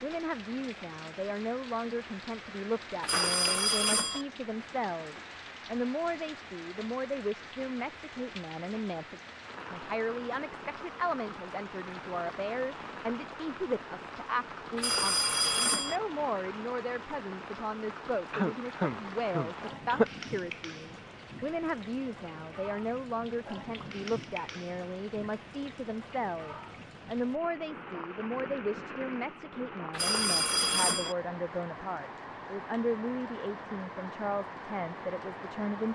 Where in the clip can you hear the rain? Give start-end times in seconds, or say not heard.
0.0-35.8.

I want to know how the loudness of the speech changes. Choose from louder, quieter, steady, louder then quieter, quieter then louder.
steady.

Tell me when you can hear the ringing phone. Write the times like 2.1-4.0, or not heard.
3.0-4.2, 14.8-16.0, 29.9-31.1.